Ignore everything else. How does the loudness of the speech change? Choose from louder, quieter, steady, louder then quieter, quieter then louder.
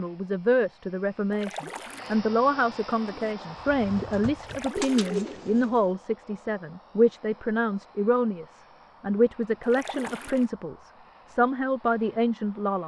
steady.